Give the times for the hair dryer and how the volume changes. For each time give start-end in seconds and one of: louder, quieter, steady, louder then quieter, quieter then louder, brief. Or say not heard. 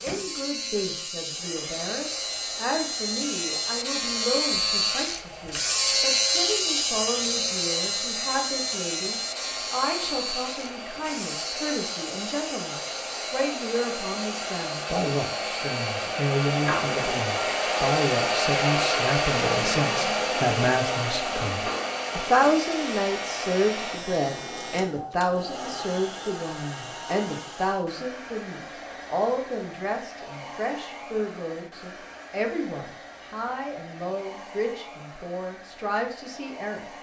0.0-36.9 louder then quieter.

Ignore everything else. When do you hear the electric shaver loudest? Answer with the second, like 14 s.
6 s.